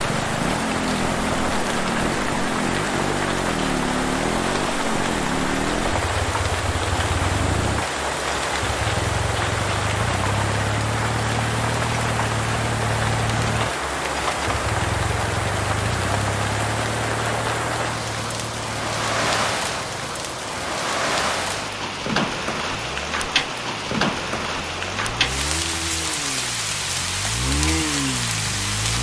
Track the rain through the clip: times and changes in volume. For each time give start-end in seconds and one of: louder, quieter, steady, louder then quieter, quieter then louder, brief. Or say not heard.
0.0-28.9 steady.